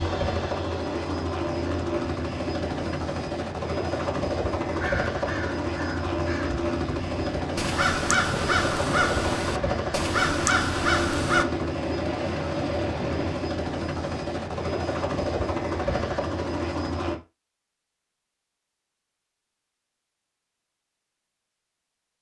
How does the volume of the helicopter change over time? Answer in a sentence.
The volume of the helicopter stays about the same.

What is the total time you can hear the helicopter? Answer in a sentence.
You can hear the helicopter for 17 seconds altogether.